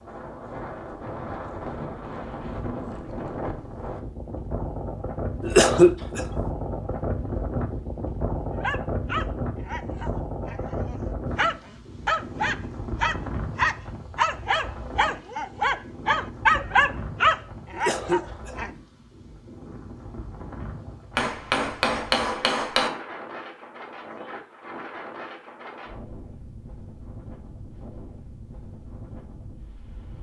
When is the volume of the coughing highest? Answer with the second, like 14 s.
6 s.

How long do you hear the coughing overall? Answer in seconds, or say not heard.
2 s.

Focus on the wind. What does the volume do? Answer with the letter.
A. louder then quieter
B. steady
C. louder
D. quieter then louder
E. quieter
E.